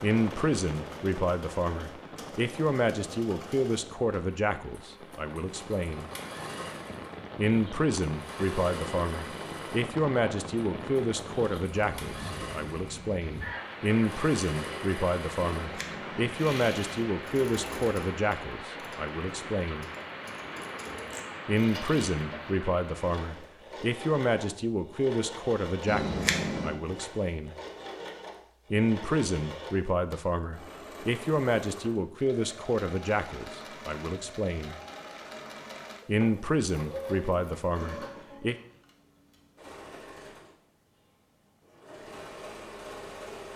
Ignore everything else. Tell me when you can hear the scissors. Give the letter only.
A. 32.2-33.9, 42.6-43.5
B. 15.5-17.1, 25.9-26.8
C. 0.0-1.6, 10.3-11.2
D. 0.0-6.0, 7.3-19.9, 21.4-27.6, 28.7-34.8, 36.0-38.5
B.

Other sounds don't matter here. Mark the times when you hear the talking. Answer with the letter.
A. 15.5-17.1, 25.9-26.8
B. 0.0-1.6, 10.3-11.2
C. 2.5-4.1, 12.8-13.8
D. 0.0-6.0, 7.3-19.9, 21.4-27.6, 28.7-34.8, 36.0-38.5
D.